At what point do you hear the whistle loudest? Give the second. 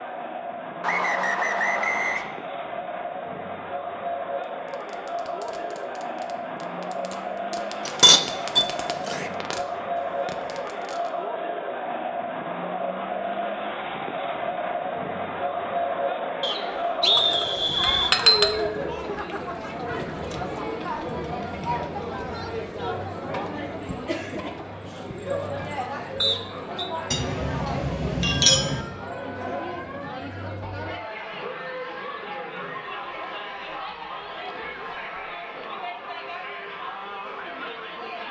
17 s.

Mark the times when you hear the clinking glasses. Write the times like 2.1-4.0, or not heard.
7.8-9.3, 17.1-18.5, 27.1-28.8.